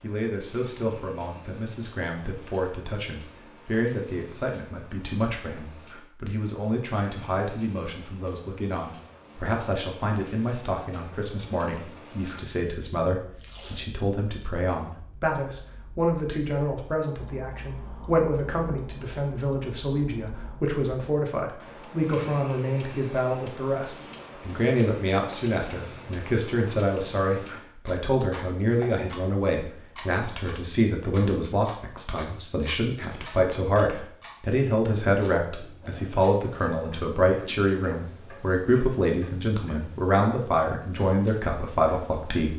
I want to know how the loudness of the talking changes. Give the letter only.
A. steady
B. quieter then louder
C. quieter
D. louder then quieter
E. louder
E.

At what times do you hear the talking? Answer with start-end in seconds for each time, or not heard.
0.0-42.5.